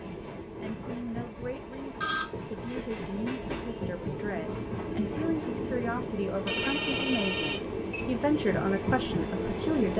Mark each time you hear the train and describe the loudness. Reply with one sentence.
The train can be heard from 0.0 to 9.9 s, getting louder.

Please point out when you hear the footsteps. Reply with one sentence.
You can't hear the footsteps here.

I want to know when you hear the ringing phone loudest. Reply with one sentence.
The volume of the ringing phone peaks at 2 seconds.